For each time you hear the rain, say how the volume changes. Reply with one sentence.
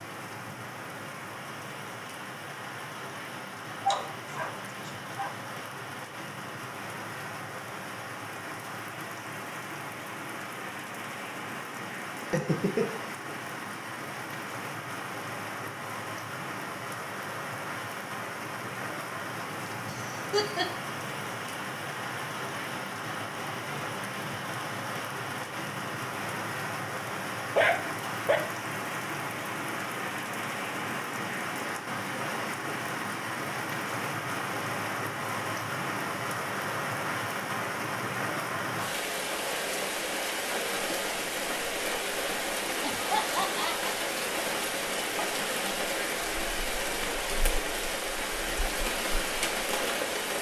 You can hear the rain from 0.0 to 50.3 s, getting louder.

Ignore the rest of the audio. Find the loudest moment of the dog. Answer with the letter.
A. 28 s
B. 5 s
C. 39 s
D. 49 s
A.